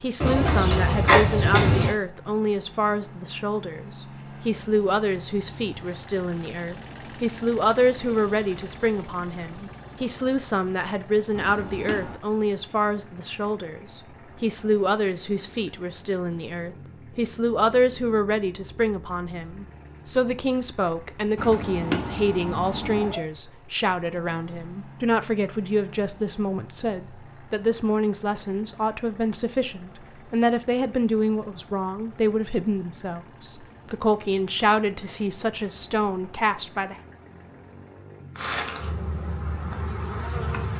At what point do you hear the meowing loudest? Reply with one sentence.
The loudest moment of the meowing is at 22 seconds.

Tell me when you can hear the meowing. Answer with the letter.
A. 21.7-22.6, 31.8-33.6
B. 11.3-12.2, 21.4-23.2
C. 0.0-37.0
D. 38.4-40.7
B.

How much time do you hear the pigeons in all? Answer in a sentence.
You can hear the pigeons for 2 seconds altogether.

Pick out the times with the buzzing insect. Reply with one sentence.
You can hear the buzzing insect from 38.4 to 40.7 s.